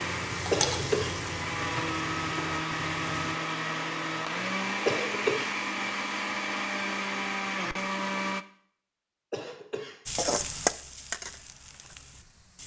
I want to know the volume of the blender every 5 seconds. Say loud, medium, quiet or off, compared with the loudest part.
loud, loud, off.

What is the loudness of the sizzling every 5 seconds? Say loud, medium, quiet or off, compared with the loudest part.
loud, off, loud.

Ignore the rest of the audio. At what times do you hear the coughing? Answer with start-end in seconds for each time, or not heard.
0.5-1.1, 4.8-5.5, 9.3-10.0.